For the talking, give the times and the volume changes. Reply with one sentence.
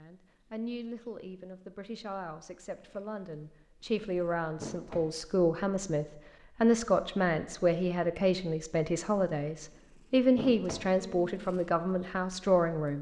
You can hear the talking from 0.0 to 12.9 s, getting louder.